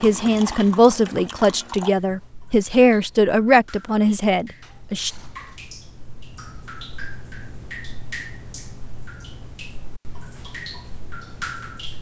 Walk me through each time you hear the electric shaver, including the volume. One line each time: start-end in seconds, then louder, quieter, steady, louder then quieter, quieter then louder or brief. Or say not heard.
not heard.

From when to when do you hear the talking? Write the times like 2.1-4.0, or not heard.
0.0-5.1.